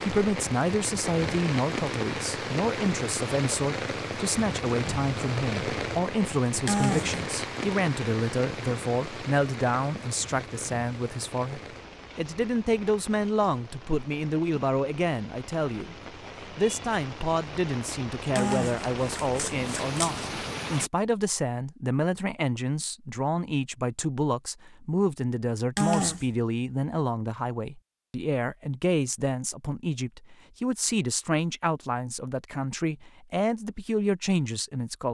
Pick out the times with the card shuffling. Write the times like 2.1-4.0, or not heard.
6.7-7.2, 18.4-20.2, 25.8-26.2.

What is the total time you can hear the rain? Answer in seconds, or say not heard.
21 s.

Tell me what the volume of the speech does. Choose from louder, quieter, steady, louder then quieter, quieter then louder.
steady.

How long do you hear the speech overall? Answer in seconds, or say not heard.
35 s.